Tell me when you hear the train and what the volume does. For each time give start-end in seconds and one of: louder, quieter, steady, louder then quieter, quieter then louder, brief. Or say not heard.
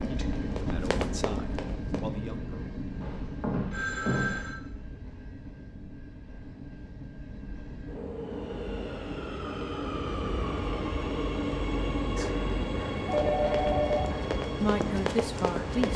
0.0-15.9 quieter then louder.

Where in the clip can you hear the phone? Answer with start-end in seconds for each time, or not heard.
3.0-4.5, 13.1-14.1.